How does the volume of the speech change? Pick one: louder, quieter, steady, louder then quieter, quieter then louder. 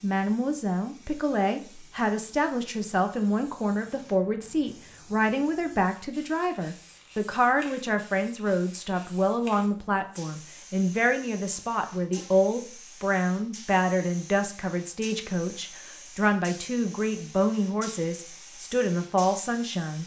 steady.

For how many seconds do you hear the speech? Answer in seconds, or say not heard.
20 s.